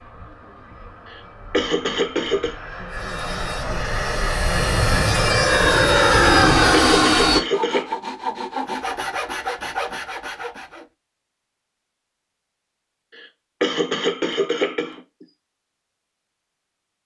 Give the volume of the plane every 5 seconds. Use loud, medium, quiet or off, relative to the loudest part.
quiet, loud, off, off.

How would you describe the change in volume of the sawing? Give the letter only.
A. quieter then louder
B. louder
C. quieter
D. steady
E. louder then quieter
B.